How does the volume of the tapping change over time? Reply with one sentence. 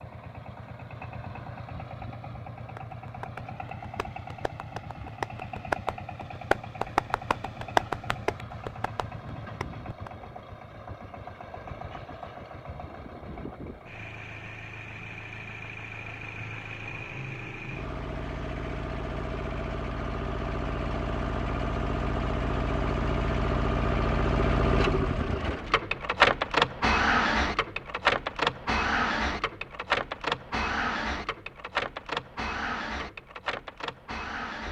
The loudness of the tapping goes up, then down.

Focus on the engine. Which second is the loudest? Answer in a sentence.
The volume of the engine peaks at 27 seconds.